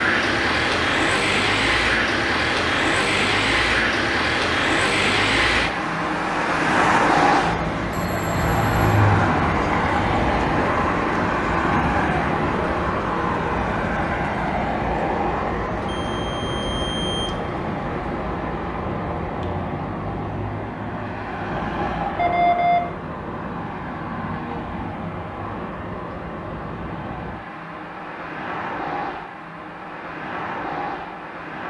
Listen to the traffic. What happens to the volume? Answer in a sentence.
The loudness of the traffic goes down.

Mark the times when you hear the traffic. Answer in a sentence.
The traffic can be heard from 0.0 to 31.6 s.